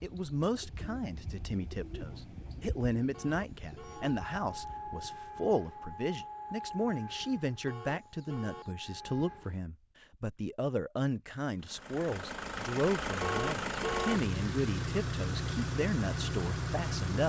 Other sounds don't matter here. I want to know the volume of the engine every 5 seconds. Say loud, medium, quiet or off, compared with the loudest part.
off, off, loud, loud.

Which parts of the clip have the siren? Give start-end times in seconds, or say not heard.
3.9-9.6.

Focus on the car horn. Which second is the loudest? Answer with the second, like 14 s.
14 s.